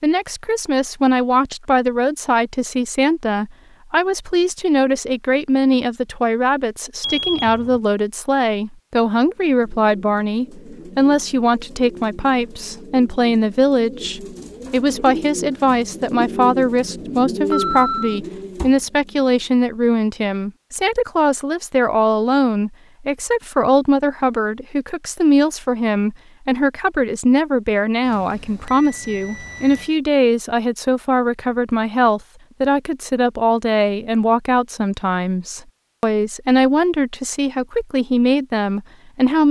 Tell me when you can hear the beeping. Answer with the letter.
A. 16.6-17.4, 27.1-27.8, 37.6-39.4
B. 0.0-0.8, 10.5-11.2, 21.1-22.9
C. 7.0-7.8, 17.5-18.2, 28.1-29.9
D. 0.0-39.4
C.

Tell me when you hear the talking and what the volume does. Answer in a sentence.
The talking can be heard from 0.0 to 39.4 s, at a steady volume.